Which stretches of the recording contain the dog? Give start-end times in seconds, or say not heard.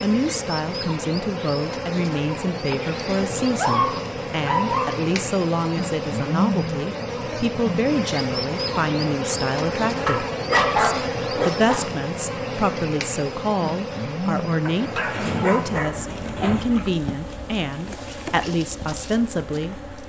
3.5-5.0, 10.1-11.8, 14.7-16.6.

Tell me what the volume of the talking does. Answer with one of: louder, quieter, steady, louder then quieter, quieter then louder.
steady.